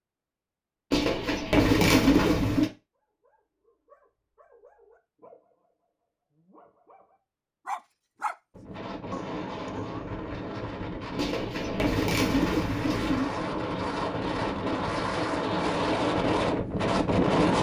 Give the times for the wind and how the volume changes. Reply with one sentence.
You can hear the wind from 8.5 to 17.5 s, getting louder.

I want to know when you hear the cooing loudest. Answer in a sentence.
The loudest moment of the cooing is at 2 seconds.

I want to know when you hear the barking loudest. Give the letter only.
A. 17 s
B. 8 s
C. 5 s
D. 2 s
B.